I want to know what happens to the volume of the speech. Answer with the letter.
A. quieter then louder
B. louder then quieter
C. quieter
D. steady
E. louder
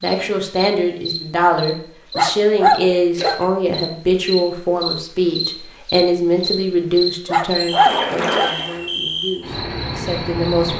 C.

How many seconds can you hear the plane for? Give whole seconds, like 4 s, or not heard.
not heard.